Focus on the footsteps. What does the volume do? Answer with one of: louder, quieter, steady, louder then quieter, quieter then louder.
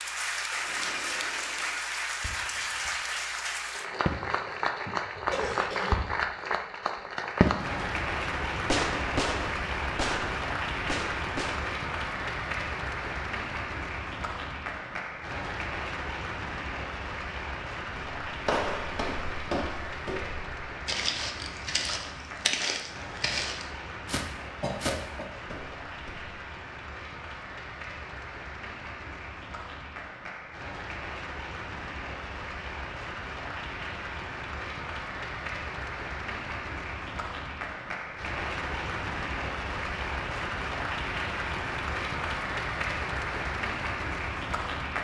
steady.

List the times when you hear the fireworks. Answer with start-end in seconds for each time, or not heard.
0.6-3.0, 4.0-6.5, 7.4-7.8, 8.7-11.7.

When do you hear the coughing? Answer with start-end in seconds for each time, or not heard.
5.3-6.0, 24.6-25.2.